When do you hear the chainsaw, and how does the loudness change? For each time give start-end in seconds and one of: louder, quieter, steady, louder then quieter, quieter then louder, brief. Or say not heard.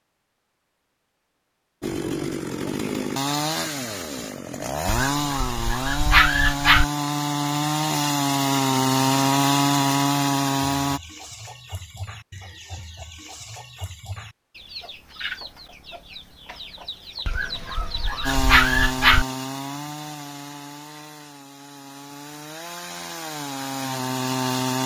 1.8-11.0 louder
18.2-24.8 quieter then louder.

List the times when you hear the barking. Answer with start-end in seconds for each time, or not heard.
4.8-6.8, 17.2-19.2.